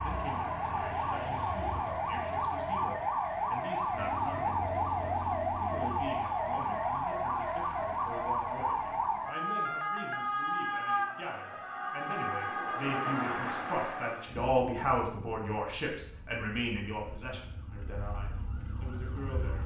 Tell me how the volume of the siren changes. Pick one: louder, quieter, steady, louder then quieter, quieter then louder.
quieter.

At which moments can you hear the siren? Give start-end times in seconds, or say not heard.
0.0-19.6.